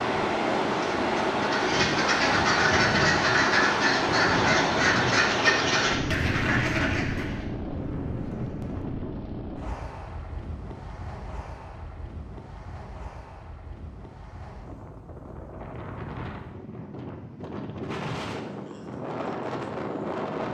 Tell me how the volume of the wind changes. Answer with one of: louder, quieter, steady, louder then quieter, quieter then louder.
quieter then louder.